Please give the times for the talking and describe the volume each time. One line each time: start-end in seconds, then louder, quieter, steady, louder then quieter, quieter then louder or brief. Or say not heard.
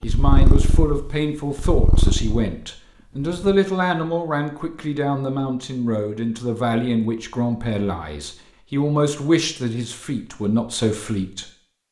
0.0-11.4 steady.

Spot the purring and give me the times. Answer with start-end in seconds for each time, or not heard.
0.0-3.6.